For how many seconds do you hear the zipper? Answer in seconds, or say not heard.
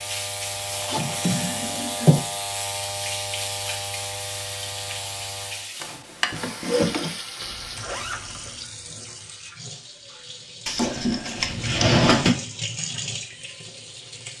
2 s.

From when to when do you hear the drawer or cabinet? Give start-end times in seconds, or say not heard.
0.9-2.2, 5.8-7.2, 10.7-12.3.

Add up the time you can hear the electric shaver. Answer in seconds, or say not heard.
6 s.